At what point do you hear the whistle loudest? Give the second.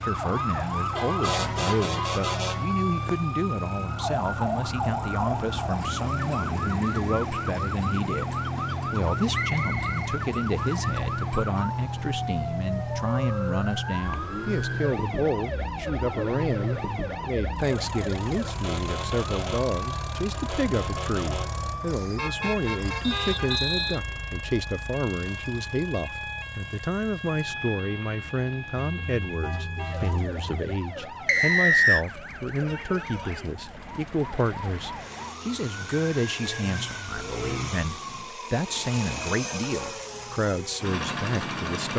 32 s.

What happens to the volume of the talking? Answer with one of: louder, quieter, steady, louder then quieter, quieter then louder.
steady.